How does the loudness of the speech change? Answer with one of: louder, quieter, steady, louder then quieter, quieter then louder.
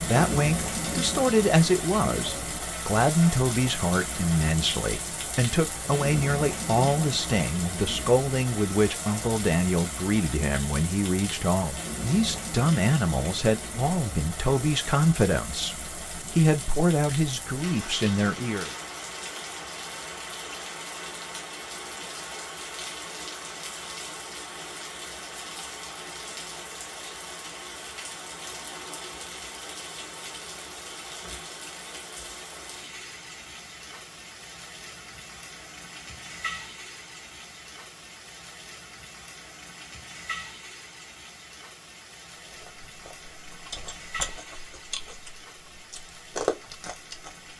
steady.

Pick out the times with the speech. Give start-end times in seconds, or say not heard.
0.0-18.7.